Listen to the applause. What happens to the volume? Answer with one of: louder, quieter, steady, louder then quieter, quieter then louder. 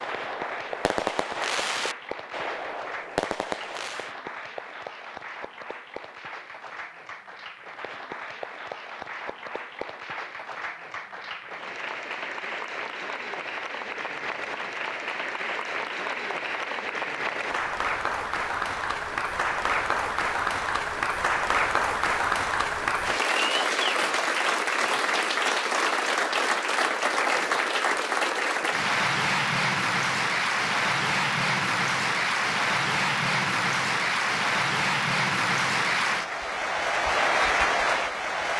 louder.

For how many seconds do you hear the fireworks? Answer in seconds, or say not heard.
4 s.